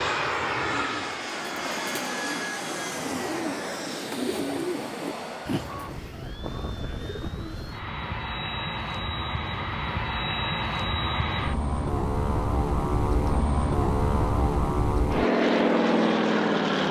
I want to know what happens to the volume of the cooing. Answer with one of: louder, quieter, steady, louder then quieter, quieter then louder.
louder then quieter.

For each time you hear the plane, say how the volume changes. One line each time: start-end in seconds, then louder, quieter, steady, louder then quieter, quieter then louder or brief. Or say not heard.
0.0-16.8 quieter then louder.